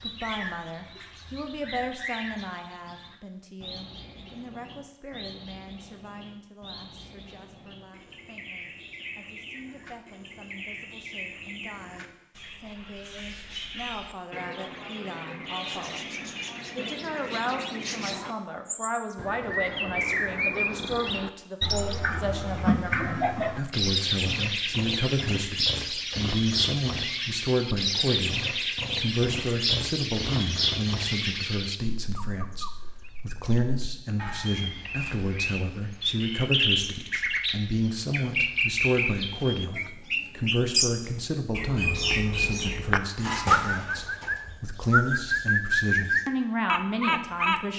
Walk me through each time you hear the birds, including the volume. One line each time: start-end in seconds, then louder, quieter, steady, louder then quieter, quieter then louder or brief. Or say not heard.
0.0-47.7 louder.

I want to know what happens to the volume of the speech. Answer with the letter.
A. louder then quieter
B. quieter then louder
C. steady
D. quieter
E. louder
E.